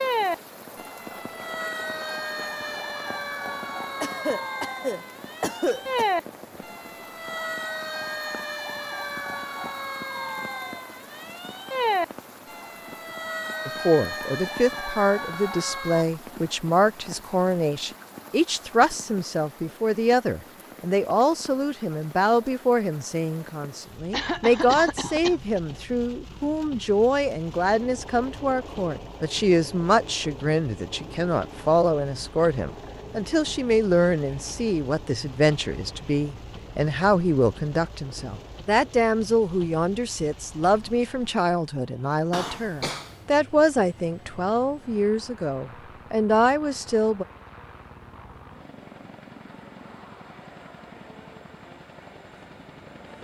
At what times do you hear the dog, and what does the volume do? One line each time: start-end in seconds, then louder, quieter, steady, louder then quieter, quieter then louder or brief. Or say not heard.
not heard.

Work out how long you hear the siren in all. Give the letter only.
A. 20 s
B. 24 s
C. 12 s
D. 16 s
D.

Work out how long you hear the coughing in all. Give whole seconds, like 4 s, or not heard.
5 s.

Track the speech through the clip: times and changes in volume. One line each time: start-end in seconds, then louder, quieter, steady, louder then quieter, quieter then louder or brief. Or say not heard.
13.7-47.2 steady.